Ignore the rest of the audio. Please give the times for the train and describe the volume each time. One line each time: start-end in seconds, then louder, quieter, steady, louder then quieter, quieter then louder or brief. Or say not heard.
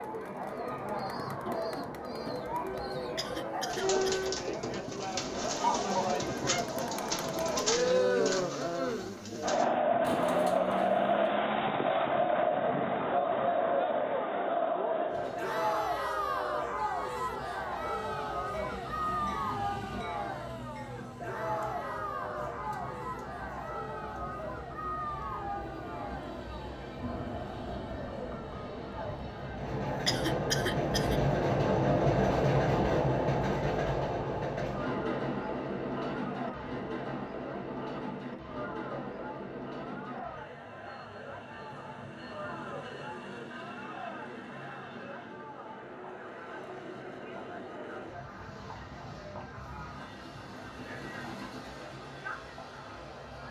15.1-53.4 louder then quieter.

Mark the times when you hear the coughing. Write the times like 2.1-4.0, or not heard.
3.1-4.3, 30.1-31.2.